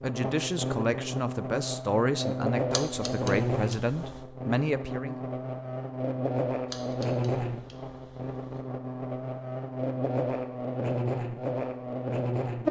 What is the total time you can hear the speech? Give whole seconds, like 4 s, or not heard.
5 s.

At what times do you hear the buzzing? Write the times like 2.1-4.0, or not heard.
0.0-12.6.